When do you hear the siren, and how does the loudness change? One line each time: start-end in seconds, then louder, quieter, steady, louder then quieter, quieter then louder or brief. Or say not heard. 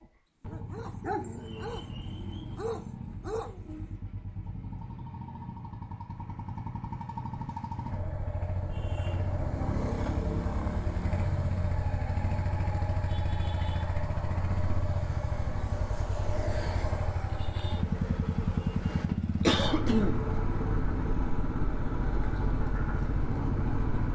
not heard.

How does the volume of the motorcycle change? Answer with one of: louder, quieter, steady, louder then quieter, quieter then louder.
louder.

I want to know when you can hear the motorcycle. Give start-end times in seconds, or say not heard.
0.0-24.0.